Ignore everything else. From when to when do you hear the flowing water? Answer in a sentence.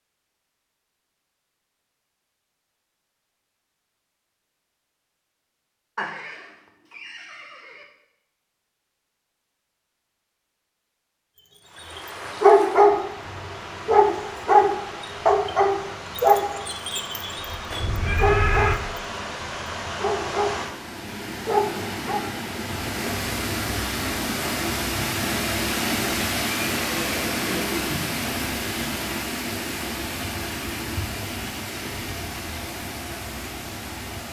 The flowing water can be heard from 11.6 to 34.2 s.